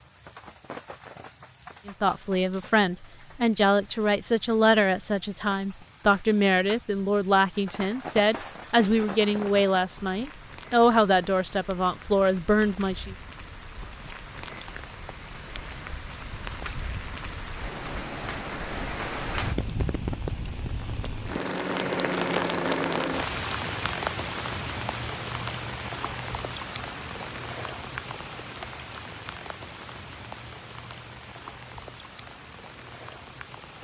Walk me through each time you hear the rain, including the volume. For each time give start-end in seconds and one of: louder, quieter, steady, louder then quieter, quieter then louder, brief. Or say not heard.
0.0-33.7 louder then quieter.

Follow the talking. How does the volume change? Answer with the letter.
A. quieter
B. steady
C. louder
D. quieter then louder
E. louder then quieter
B.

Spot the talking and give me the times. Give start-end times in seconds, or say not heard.
1.9-13.2.